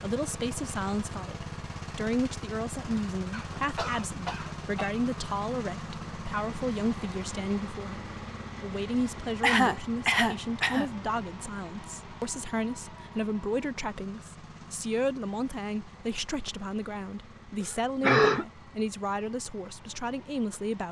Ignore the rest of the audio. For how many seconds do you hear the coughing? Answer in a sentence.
The coughing can be heard for 4 seconds in total.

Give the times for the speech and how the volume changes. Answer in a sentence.
The speech can be heard from 0.0 to 20.8 s, at a steady volume.